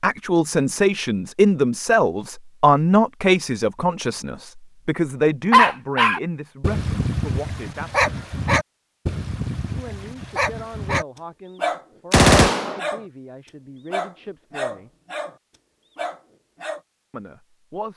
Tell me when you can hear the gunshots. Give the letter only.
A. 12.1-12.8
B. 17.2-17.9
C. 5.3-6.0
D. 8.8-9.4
A.